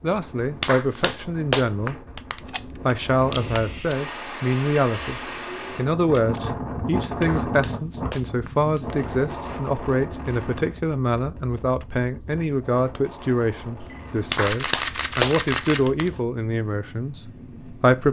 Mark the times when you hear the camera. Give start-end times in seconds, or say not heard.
2.5-4.0, 6.1-6.5, 13.8-15.9.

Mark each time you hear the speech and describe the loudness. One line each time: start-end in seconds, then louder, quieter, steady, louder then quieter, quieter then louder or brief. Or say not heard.
0.0-2.0 brief
2.9-18.0 steady.